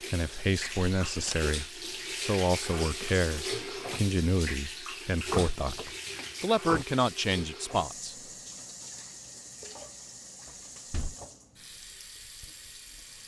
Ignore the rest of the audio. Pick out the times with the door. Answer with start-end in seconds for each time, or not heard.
0.7-1.4, 5.2-6.8, 10.4-11.2.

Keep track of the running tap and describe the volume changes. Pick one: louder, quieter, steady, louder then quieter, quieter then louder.
quieter.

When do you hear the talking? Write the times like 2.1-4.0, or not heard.
0.1-8.2.